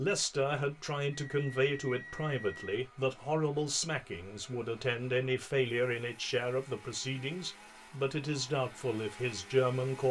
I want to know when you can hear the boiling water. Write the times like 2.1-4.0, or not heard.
not heard.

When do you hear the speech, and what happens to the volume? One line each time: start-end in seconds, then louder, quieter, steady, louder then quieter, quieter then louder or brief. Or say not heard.
0.0-10.0 steady.